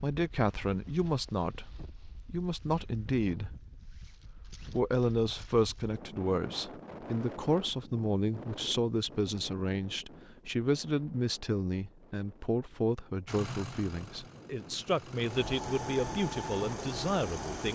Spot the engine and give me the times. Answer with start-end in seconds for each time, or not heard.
13.2-17.7.